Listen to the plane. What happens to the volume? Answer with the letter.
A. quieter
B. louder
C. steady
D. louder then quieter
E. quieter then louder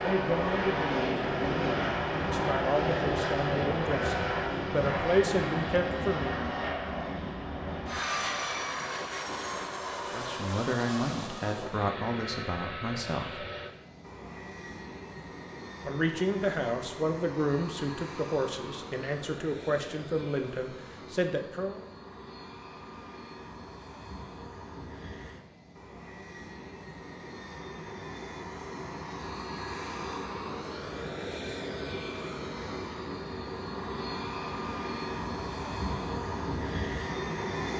E.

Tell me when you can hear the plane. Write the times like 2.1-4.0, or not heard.
0.0-37.7.